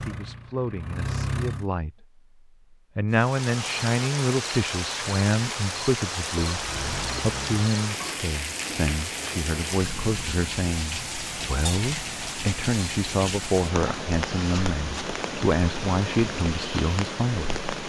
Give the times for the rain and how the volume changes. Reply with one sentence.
You can hear the rain from 3.1 to 17.8 s, at a steady volume.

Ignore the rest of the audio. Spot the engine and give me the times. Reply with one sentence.
You can hear the engine from 0.0 to 1.7 s and from 6.5 to 8.3 s.